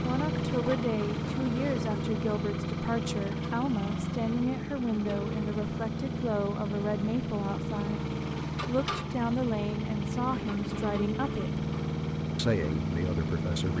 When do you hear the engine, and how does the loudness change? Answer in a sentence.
The engine can be heard from 0.0 to 13.7 s, at a steady volume.